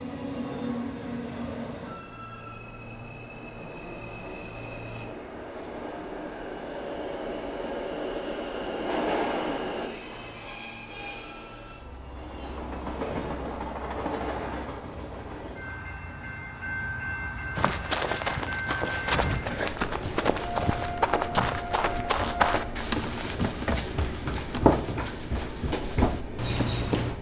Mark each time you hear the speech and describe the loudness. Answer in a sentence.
You can't hear the speech here.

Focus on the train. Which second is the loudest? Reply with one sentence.
The loudest moment of the train is at 9 seconds.